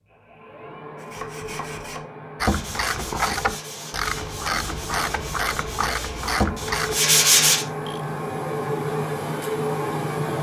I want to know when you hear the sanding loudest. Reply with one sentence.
The loudest moment of the sanding is at 7 seconds.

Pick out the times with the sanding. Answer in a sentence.
The sanding can be heard from 0.9 to 7.7 s.